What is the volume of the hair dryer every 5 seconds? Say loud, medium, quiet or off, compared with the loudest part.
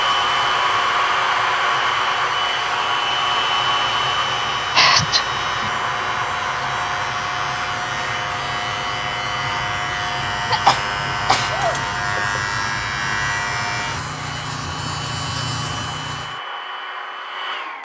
loud, medium, medium, medium.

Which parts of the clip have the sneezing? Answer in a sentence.
You can hear the sneezing from 4.8 to 5.7 s and from 10.5 to 11.8 s.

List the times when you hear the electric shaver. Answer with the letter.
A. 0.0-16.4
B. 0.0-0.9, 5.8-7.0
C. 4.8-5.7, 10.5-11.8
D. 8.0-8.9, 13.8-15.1
A.